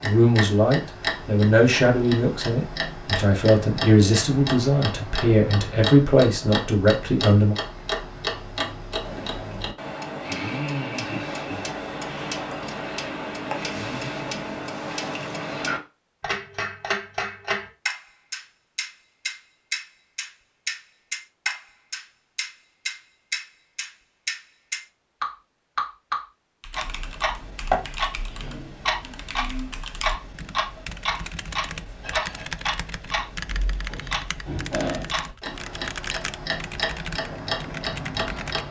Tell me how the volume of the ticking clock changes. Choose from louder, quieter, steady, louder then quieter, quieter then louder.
steady.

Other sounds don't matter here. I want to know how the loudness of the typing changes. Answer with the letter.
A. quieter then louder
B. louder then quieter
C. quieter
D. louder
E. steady
D.